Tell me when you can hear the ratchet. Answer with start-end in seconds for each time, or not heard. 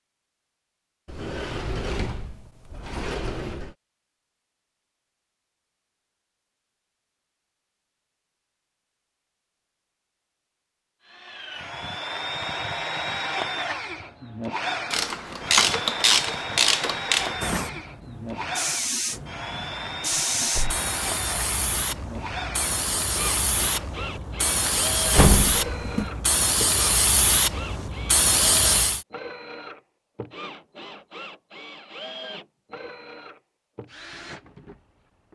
14.9-17.4.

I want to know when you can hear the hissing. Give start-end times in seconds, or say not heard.
17.1-29.1.